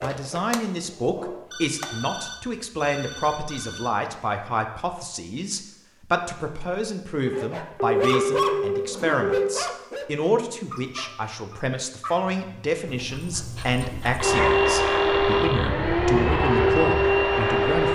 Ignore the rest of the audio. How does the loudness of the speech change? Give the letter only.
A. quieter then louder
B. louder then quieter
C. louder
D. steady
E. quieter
D.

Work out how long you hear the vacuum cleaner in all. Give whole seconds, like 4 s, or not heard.
4 s.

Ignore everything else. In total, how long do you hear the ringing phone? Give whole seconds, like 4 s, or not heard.
6 s.